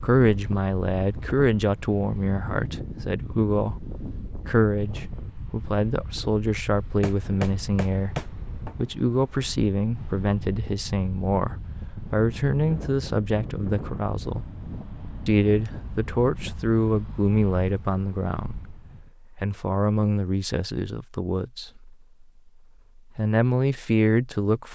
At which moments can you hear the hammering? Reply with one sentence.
The hammering can be heard from 7.0 to 8.9 s and from 14.3 to 15.9 s.